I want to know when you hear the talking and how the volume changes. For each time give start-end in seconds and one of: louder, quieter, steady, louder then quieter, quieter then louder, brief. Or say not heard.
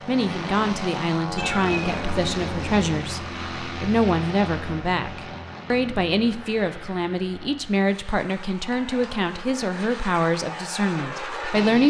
0.1-11.8 steady.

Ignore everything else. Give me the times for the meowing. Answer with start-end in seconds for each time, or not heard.
1.4-3.0, 8.6-9.3.